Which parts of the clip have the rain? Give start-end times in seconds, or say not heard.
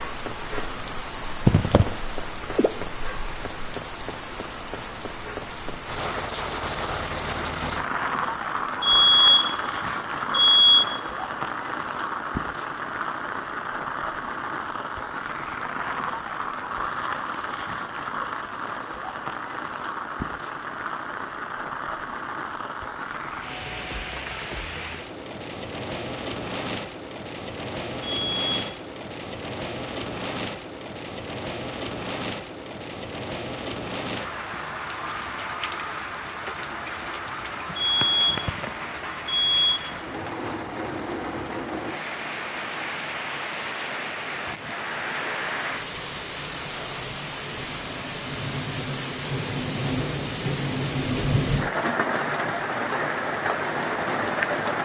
0.0-54.8.